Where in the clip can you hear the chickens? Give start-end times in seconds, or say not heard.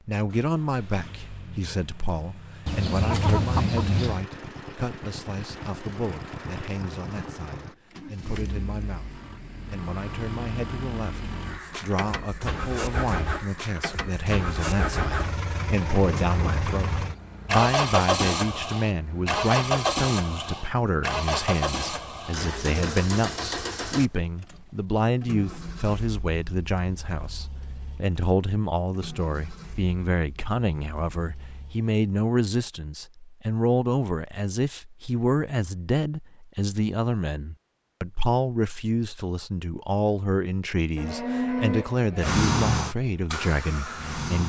2.6-4.2.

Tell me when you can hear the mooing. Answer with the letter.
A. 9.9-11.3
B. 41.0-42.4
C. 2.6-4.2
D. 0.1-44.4
B.